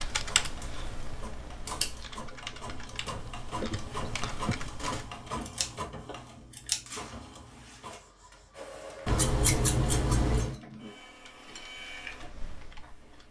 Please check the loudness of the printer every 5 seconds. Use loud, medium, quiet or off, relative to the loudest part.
loud, loud, medium.